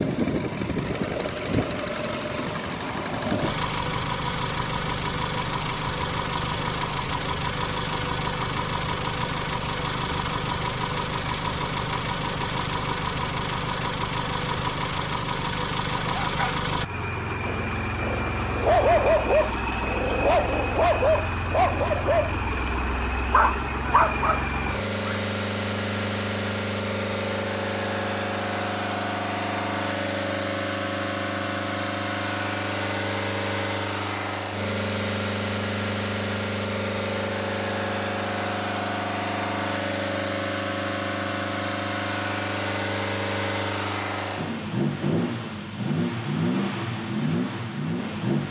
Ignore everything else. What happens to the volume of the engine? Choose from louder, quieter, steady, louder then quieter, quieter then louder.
steady.